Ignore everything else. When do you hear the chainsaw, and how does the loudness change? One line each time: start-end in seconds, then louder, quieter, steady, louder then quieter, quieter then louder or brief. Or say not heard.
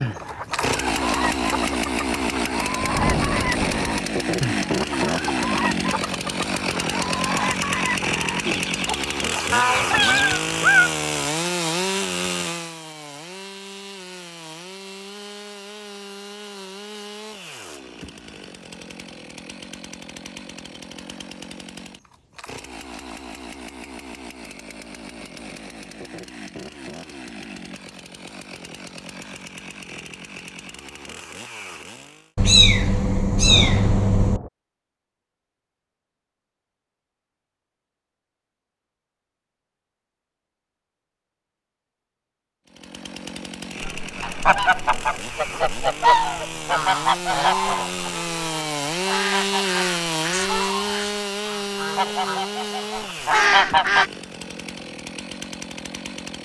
0.0-32.3 quieter
42.6-56.3 louder then quieter.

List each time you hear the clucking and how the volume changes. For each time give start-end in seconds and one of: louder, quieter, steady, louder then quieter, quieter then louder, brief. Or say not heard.
0.0-10.4 steady
43.8-54.1 quieter then louder.